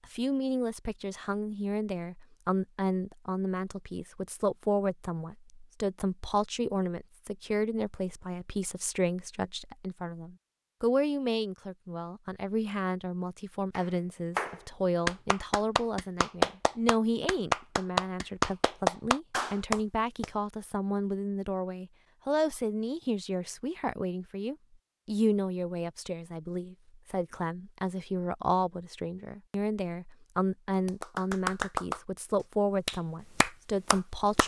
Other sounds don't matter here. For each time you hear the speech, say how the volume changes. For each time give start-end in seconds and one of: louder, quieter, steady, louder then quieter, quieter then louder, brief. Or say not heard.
0.1-34.4 steady.